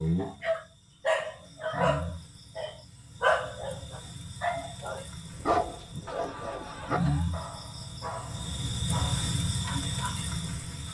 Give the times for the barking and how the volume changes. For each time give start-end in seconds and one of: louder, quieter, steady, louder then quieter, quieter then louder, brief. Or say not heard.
0.2-10.2 quieter.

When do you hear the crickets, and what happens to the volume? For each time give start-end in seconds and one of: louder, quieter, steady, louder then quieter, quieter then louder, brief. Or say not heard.
0.0-10.8 quieter then louder.